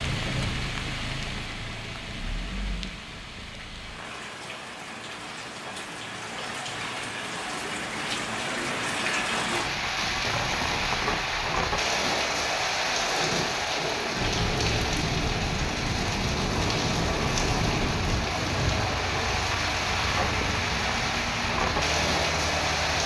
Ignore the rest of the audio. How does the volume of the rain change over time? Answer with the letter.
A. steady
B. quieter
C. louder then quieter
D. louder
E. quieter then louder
D.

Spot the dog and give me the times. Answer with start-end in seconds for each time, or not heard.
not heard.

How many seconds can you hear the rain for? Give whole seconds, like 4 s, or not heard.
23 s.